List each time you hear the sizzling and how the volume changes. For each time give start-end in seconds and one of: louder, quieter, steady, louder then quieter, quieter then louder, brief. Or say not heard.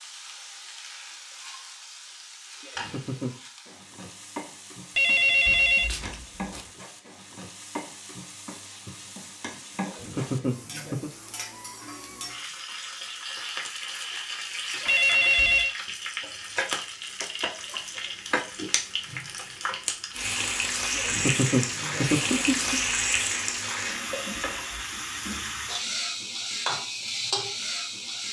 0.0-28.2 louder.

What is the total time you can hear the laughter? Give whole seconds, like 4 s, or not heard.
4 s.